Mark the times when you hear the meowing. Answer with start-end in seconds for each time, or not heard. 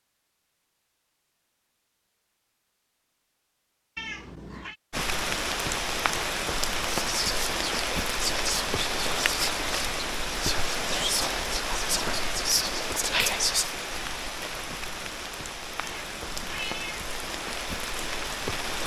4.0-4.8, 15.8-17.1.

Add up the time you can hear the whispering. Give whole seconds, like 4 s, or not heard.
7 s.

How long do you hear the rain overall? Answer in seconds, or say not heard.
14 s.